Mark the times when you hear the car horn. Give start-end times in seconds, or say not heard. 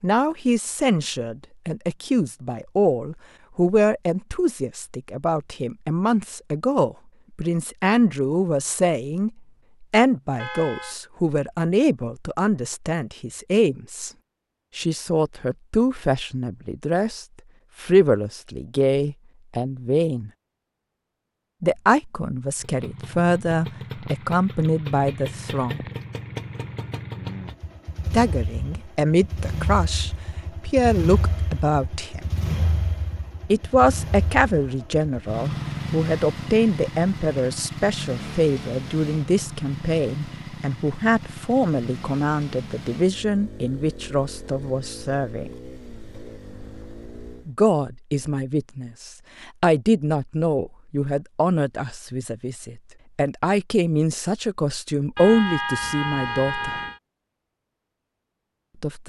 10.3-10.9, 55.1-57.0.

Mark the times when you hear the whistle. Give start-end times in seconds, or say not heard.
not heard.